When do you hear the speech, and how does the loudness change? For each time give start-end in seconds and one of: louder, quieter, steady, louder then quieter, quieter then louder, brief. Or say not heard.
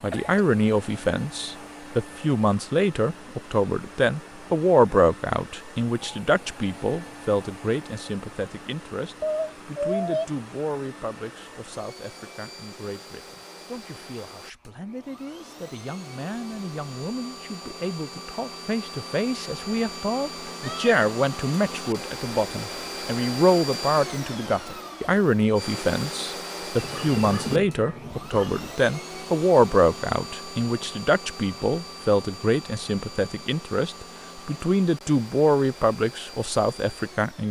0.0-37.4 quieter then louder.